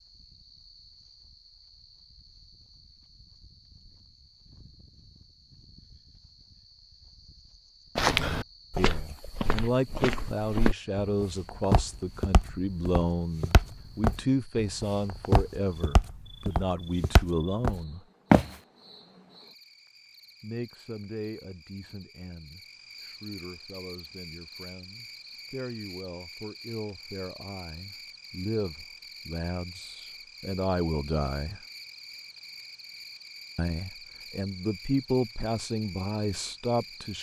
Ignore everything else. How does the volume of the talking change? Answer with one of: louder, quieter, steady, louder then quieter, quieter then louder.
quieter then louder.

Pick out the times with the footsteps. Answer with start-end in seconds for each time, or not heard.
8.0-18.5.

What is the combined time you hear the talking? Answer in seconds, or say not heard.
24 s.